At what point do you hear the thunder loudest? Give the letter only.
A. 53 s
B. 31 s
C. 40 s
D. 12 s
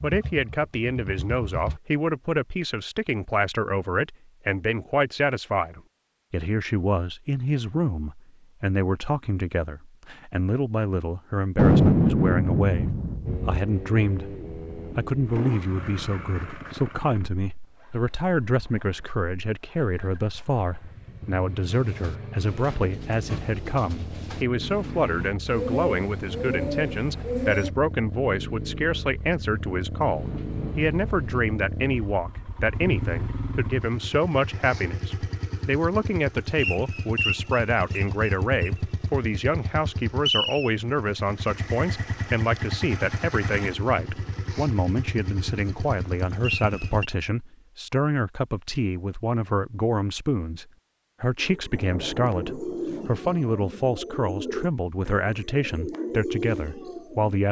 D.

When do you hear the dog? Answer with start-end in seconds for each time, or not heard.
not heard.